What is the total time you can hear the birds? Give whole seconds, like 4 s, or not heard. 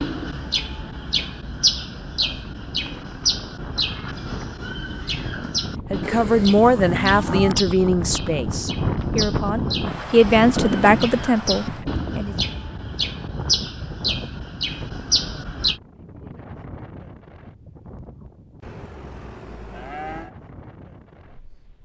16 s.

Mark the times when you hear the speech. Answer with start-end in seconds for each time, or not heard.
5.9-12.3.